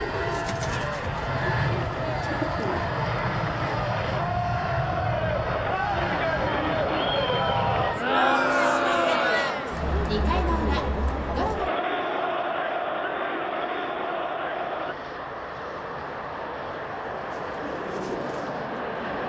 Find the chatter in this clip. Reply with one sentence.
You can hear the chatter from 0.0 to 14.9 s.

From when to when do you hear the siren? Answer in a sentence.
You can't hear the siren here.